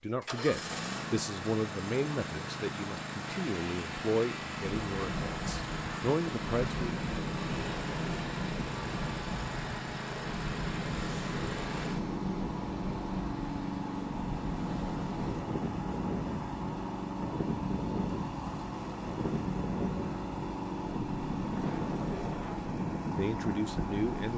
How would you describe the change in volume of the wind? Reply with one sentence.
The volume of the wind stays about the same.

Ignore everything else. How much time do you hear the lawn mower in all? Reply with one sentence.
You can hear the lawn mower for 24 seconds altogether.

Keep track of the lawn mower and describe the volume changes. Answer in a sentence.
The loudness of the lawn mower stays about the same.